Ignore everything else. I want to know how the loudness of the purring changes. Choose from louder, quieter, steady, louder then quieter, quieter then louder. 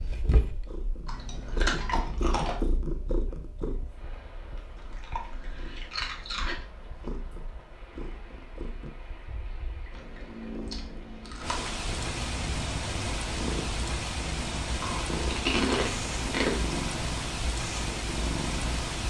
quieter then louder.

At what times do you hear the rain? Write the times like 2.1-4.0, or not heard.
3.8-19.0.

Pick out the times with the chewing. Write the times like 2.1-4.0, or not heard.
1.1-2.5, 4.8-6.5, 9.9-11.7, 14.8-16.6.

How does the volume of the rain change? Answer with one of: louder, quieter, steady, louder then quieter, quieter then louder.
louder.